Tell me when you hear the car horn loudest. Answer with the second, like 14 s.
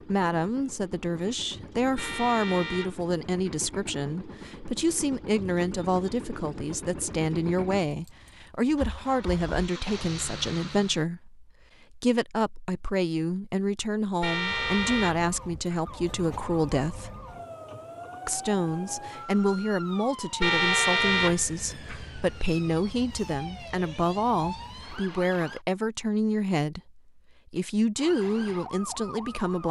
21 s.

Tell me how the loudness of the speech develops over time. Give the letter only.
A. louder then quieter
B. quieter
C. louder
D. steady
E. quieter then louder
D.